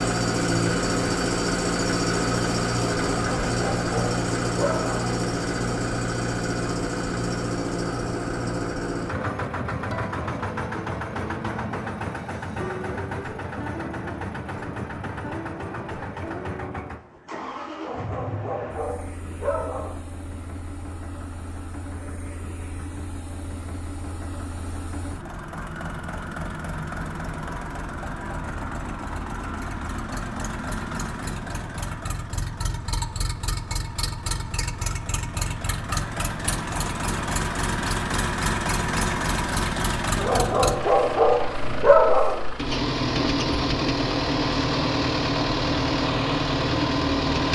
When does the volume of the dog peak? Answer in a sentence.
The volume of the dog peaks at 42 seconds.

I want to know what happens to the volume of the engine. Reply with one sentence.
The volume of the engine goes down, then up.